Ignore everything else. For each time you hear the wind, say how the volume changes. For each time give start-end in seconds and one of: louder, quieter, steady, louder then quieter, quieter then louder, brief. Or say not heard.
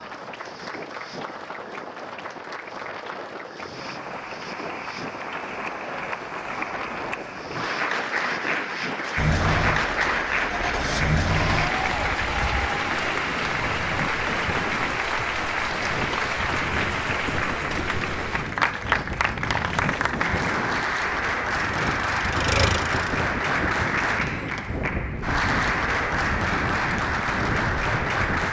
0.0-28.4 louder.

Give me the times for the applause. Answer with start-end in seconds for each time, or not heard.
0.0-28.4.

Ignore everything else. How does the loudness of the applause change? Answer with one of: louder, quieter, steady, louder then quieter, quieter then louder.
louder.